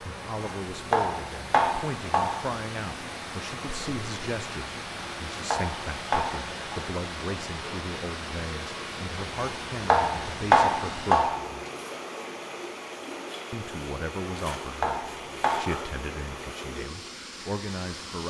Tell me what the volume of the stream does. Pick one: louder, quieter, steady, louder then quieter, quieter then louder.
steady.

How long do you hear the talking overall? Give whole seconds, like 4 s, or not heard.
16 s.